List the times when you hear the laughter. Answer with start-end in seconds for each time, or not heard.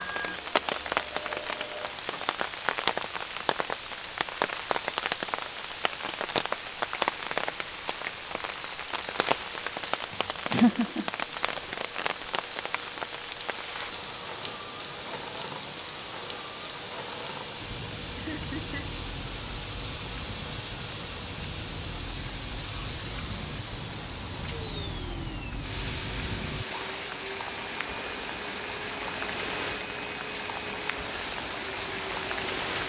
10.5-11.1, 18.1-18.9.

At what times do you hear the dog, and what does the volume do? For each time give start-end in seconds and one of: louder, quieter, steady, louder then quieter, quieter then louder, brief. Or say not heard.
not heard.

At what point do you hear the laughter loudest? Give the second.
11 s.